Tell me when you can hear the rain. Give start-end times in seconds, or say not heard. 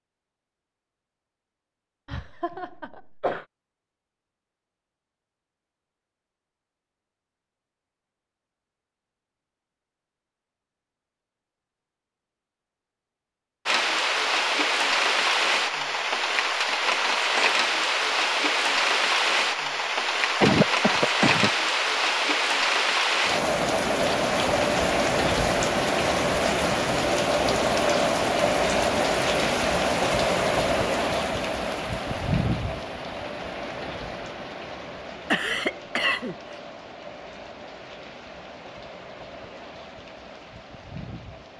13.7-41.5.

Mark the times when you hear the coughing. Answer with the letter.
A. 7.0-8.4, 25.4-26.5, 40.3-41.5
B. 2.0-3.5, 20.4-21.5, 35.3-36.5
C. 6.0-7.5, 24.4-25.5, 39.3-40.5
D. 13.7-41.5
B.